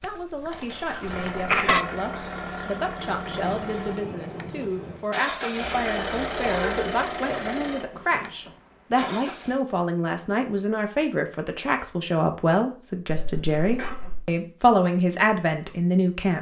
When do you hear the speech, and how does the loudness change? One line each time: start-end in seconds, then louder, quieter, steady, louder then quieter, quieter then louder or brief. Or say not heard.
0.0-16.3 louder.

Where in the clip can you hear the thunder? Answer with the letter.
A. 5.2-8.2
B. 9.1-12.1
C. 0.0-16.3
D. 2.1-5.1
D.